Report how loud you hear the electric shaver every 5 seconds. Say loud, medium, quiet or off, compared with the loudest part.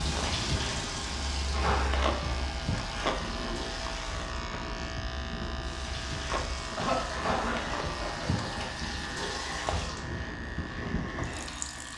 loud, loud, medium.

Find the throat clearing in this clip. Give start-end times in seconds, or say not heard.
6.8-8.7.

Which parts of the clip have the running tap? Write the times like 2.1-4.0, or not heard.
0.0-11.9.